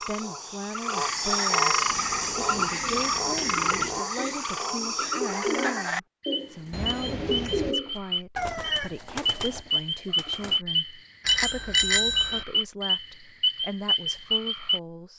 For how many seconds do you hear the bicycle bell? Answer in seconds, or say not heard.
3 s.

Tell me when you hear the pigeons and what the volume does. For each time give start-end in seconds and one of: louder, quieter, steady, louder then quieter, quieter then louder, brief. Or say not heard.
1.9-10.6 louder then quieter.